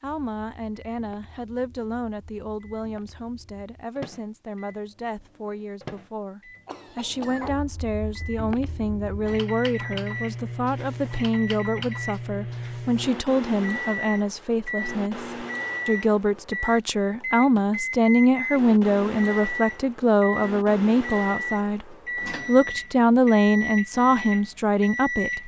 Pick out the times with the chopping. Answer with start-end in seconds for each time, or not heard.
not heard.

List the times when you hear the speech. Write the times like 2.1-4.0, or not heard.
0.0-25.4.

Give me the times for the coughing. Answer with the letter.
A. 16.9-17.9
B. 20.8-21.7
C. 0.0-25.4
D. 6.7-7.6
D.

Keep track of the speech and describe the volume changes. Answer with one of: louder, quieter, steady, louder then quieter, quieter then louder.
louder.